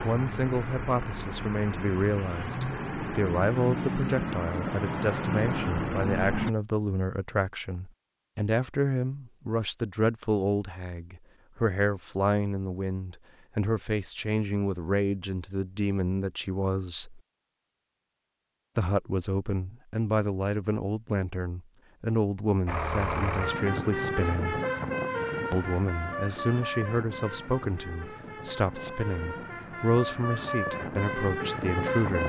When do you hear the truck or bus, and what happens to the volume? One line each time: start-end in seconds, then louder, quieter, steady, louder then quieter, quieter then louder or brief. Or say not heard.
0.0-6.5 louder
22.6-32.2 quieter then louder.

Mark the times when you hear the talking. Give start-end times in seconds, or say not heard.
0.0-17.2, 18.8-24.6, 25.5-32.2.